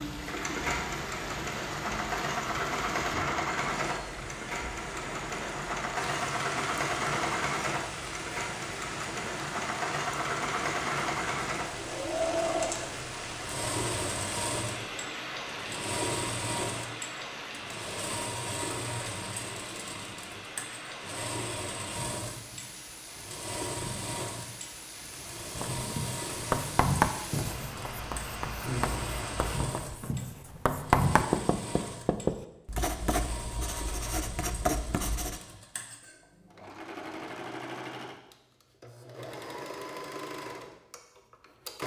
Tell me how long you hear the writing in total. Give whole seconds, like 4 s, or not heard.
10 s.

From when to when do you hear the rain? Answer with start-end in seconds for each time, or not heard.
0.0-29.6.